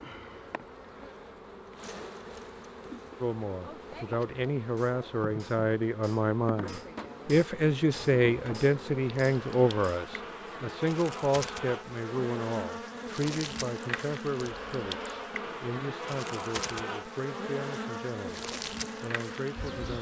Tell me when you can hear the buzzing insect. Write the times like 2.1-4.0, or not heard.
0.0-19.9.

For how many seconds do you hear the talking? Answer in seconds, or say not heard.
17 s.